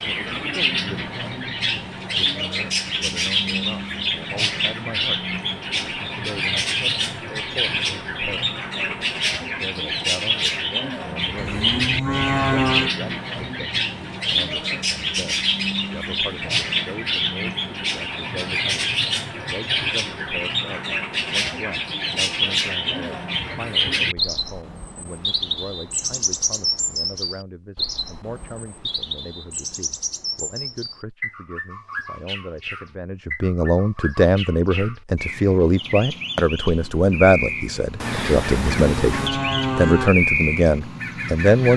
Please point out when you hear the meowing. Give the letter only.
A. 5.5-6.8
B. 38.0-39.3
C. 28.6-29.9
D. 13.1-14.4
B.